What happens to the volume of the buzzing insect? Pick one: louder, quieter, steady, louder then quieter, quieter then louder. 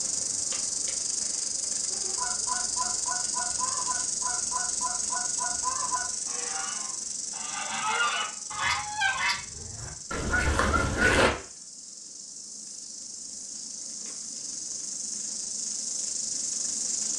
quieter then louder.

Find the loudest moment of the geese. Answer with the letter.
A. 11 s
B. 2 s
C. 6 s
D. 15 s
A.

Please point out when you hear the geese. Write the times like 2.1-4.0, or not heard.
2.1-11.3.